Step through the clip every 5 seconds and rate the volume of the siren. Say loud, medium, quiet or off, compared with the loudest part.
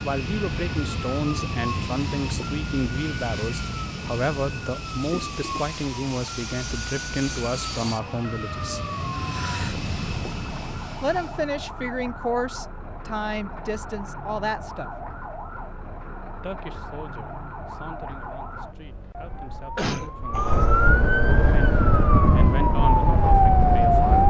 quiet, quiet, quiet, quiet, loud.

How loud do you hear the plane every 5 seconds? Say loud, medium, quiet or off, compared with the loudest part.
loud, loud, loud, off, off.